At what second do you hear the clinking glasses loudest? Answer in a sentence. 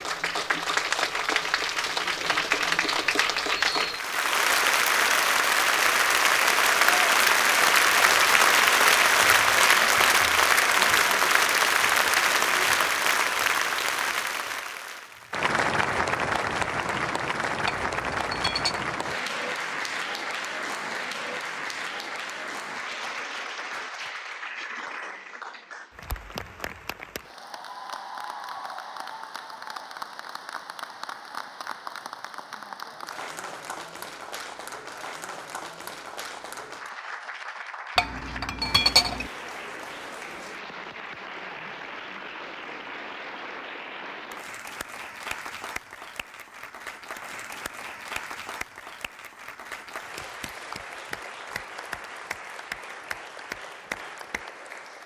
The volume of the clinking glasses peaks at 39 seconds.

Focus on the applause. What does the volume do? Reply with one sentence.
The volume of the applause goes down.